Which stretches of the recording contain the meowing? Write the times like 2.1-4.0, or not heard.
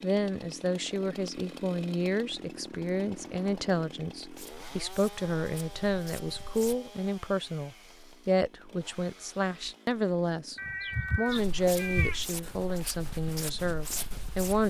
10.6-12.2.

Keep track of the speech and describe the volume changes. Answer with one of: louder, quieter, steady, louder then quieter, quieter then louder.
steady.